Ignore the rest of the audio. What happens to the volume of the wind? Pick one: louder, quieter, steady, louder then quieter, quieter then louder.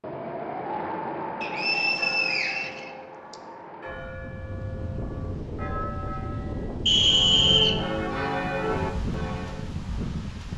quieter then louder.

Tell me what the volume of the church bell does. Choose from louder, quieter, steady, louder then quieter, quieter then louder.
louder.